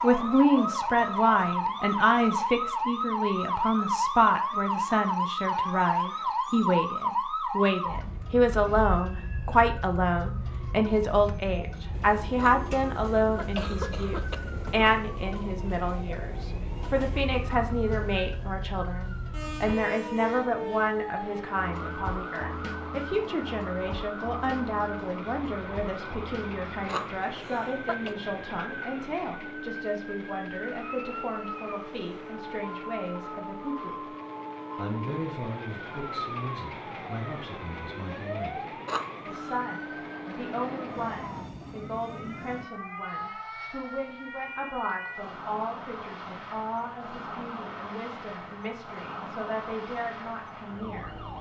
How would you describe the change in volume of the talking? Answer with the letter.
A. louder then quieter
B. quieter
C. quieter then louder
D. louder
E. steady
B.